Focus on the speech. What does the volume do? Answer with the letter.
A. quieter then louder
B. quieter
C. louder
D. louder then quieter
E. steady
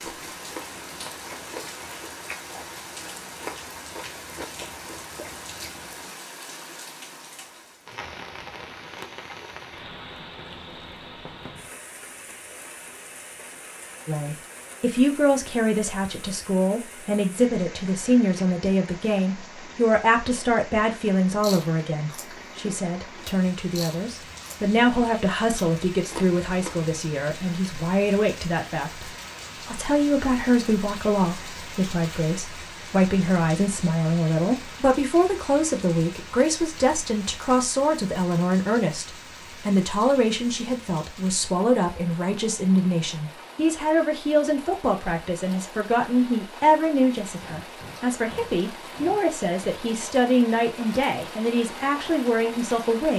E.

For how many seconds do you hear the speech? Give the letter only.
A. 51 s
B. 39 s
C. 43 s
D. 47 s
B.